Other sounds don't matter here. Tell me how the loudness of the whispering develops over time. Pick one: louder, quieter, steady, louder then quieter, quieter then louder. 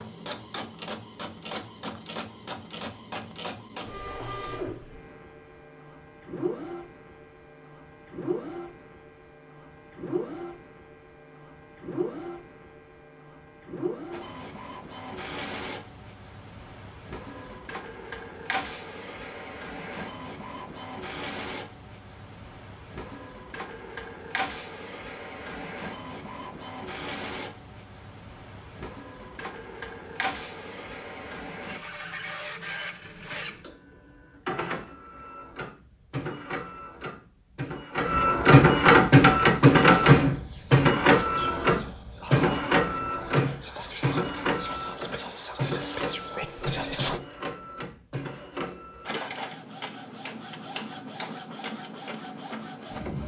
louder.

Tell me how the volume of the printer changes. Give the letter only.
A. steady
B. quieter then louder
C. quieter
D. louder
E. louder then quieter
E.